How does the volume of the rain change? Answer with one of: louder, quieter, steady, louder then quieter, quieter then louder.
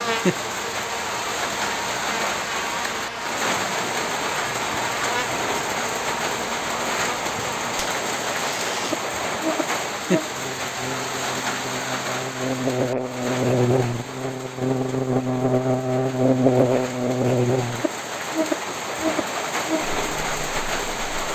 quieter then louder.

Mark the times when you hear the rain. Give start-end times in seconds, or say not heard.
0.0-21.3.